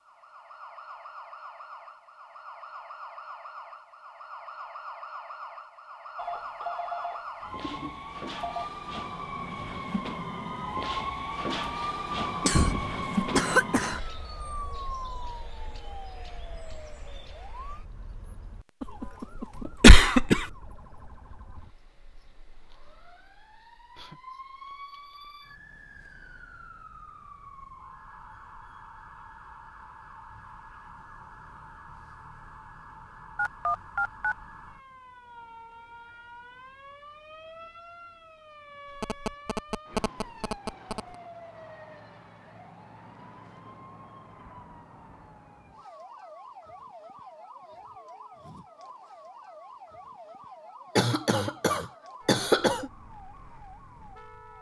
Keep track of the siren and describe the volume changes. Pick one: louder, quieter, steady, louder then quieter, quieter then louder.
quieter.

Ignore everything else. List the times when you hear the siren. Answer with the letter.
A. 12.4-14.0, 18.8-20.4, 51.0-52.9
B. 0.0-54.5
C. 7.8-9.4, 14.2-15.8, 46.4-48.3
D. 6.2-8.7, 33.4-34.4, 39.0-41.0
B.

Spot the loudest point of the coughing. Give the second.
20 s.